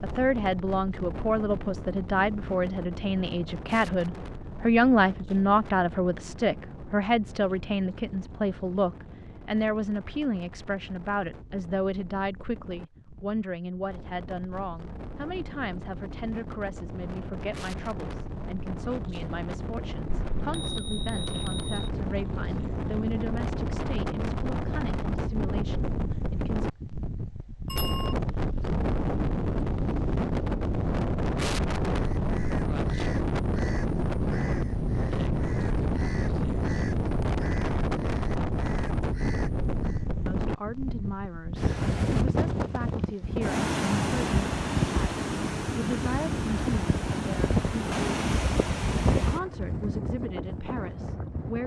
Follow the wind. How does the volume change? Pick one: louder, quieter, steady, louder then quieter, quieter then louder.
louder.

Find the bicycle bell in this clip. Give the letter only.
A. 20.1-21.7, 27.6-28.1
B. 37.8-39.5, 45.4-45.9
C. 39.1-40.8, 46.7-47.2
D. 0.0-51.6
A.